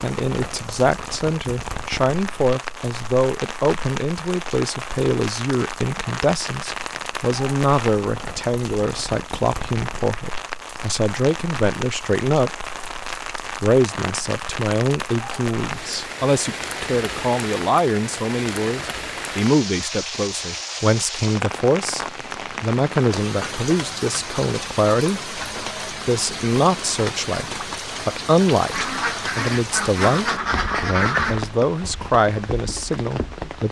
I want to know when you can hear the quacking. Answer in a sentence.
You can hear the quacking from 28.7 to 31.4 s.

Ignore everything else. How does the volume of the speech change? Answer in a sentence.
The volume of the speech stays about the same.